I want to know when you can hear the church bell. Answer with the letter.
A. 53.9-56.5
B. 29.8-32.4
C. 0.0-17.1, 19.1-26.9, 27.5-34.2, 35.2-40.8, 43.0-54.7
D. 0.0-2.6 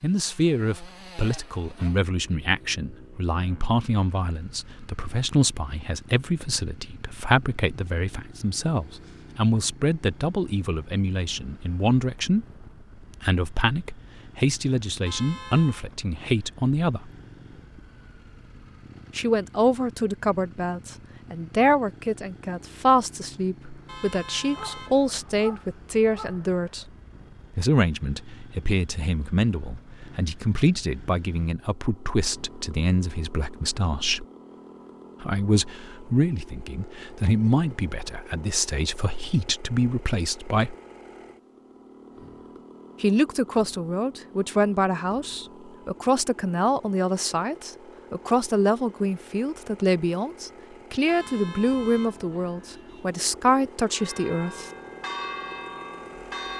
A.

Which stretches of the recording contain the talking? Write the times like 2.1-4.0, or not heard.
0.0-17.1, 19.1-26.9, 27.5-34.2, 35.2-40.8, 43.0-54.7.